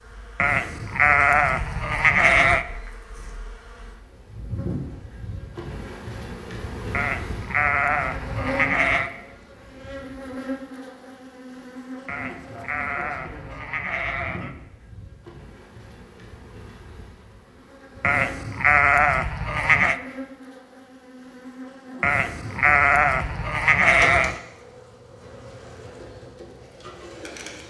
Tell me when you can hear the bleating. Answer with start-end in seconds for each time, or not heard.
0.3-2.6, 6.9-9.1, 12.1-14.5, 18.0-20.0, 22.0-24.4.